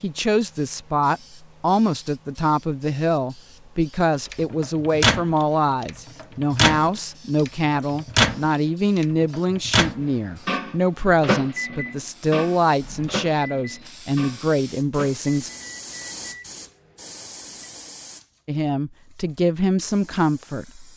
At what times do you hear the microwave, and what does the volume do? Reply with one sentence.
The microwave can be heard from 4.2 to 17.7 s, getting quieter.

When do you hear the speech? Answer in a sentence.
You can hear the speech from 0.0 to 15.5 s and from 18.4 to 20.9 s.